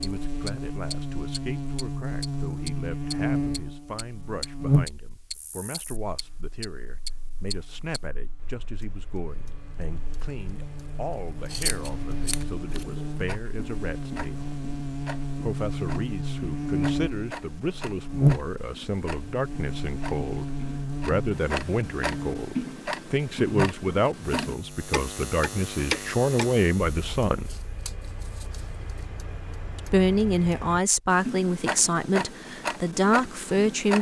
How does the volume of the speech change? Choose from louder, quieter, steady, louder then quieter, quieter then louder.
louder.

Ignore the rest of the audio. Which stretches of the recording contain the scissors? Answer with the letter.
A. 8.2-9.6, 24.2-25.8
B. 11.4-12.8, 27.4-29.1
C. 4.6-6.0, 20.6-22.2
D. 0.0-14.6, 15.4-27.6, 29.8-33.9
B.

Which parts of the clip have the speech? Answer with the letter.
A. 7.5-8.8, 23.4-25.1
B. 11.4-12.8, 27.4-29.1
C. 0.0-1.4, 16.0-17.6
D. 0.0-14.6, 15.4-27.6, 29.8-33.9
D.